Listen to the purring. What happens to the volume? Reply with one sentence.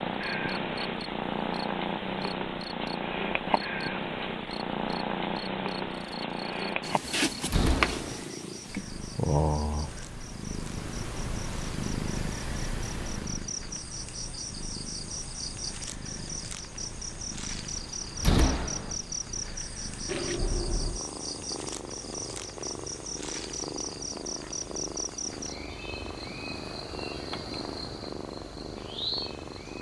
The volume of the purring goes down.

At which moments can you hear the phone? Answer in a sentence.
You can hear the phone from 20.1 to 21.0 s.